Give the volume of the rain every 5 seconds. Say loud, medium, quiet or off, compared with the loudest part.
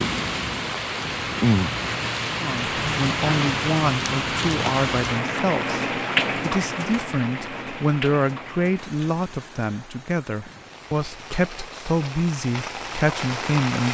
loud, loud, medium.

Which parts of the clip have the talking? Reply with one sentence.
The talking can be heard from 2.4 to 13.8 s.